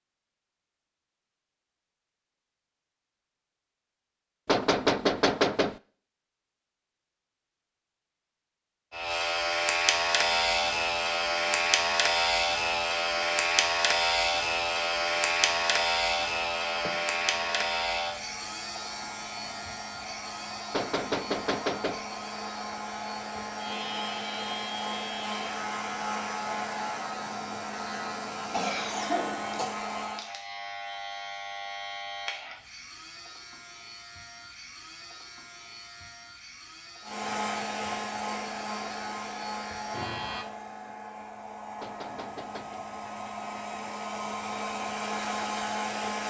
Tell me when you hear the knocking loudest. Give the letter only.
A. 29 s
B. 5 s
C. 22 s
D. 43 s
B.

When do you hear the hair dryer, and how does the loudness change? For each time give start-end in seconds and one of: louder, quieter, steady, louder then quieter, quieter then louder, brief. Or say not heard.
10.1-30.3 louder
37.0-46.2 quieter then louder.